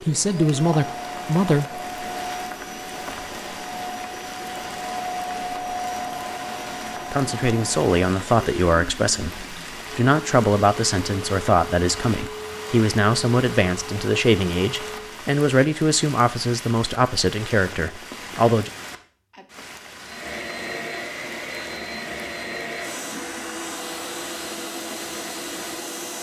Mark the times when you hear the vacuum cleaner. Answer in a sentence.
You can hear the vacuum cleaner from 0.0 to 15.2 s and from 20.1 to 26.1 s.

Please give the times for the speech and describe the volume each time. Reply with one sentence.
You can hear the speech briefly from 0.0 to 1.6 s; and from 7.1 to 18.7 s, at a steady volume.